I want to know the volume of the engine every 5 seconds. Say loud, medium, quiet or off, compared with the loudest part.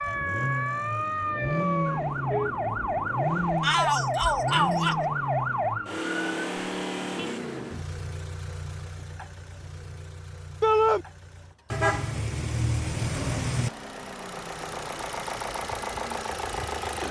loud, loud, medium, loud.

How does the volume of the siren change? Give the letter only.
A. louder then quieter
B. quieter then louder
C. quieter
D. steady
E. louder
D.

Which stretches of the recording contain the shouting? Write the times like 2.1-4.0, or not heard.
3.6-5.0, 10.6-11.1.